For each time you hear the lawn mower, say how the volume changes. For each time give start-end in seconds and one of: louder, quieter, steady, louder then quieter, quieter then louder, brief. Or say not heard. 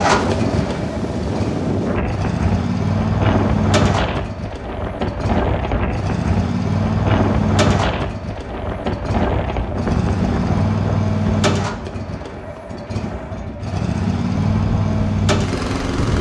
0.0-16.1 steady.